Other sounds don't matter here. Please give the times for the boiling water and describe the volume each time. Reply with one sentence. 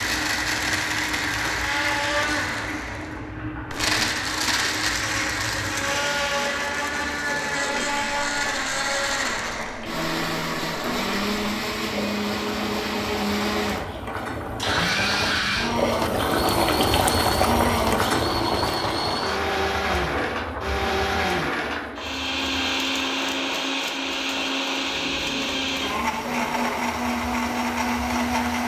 You can hear the boiling water from 0.0 to 28.6 s, getting louder then quieter.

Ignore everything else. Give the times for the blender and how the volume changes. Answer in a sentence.
You can hear the blender from 0.0 to 28.6 s, at a steady volume.